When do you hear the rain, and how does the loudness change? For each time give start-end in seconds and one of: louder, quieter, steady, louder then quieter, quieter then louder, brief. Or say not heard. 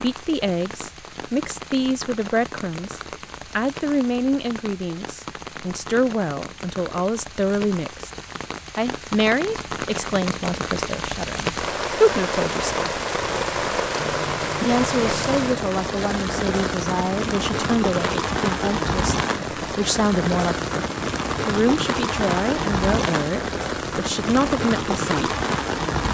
0.0-26.0 louder.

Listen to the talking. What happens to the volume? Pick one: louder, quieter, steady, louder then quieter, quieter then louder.
steady.